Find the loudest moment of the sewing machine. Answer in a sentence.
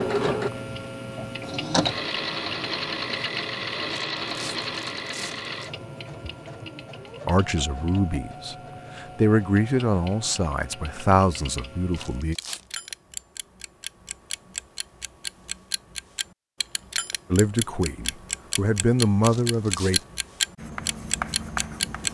The loudest moment of the sewing machine is at 2 seconds.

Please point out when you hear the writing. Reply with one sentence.
The writing can be heard from 20.6 to 22.0 s.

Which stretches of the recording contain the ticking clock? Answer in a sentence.
You can hear the ticking clock from 0.0 to 22.0 s.